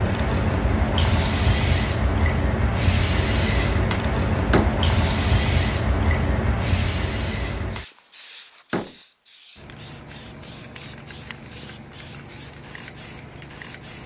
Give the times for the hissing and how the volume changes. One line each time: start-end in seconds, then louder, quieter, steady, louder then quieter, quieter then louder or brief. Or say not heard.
0.0-14.0 quieter.